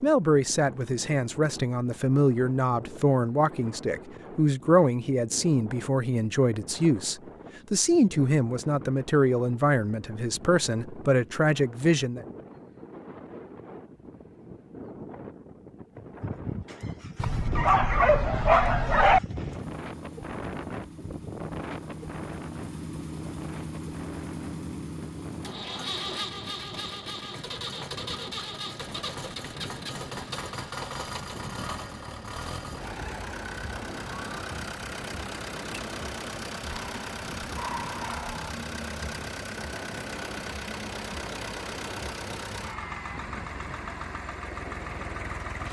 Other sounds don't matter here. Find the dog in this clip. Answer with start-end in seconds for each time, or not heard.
17.1-19.2, 36.6-38.5.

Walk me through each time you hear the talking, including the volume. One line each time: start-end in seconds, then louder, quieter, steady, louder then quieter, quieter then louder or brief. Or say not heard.
0.0-12.2 steady.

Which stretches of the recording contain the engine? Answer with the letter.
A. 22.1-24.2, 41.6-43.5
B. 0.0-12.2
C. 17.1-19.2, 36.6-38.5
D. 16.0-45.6
D.